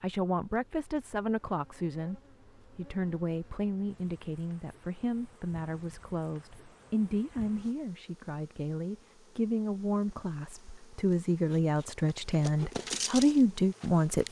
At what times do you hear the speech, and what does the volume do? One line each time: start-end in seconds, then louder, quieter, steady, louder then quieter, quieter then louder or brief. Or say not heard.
0.0-14.2 louder.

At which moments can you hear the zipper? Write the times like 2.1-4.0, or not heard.
not heard.